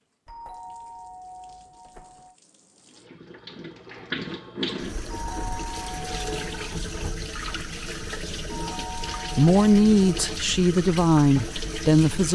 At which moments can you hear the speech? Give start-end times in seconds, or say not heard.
9.2-12.3.